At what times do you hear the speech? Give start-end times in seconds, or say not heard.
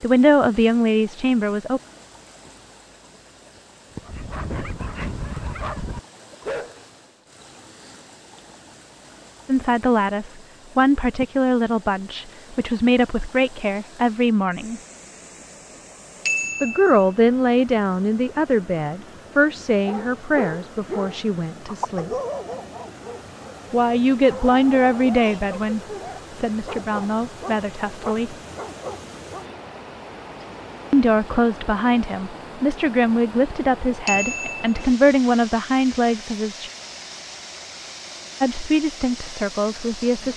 0.0-1.8, 9.4-14.8, 16.6-22.1, 23.7-28.4, 30.9-36.7, 38.4-40.3.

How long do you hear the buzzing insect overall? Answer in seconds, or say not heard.
not heard.